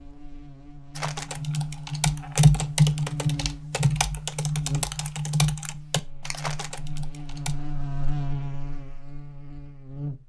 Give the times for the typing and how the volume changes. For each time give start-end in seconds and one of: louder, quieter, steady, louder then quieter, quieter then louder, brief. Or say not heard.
0.9-7.6 quieter.